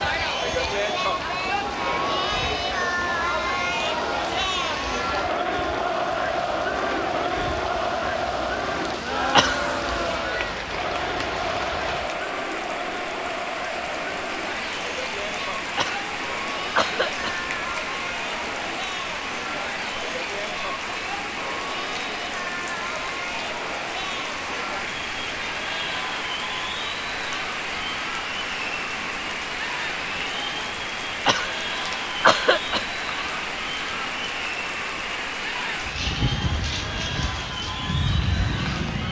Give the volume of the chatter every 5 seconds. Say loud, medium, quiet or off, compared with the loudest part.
loud, loud, medium, medium, medium, medium, medium, medium.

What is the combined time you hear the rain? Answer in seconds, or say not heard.
39 s.